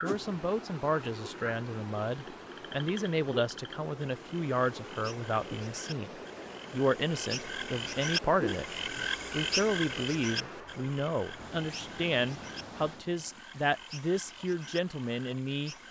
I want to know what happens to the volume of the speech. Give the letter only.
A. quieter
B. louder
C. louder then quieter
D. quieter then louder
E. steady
E.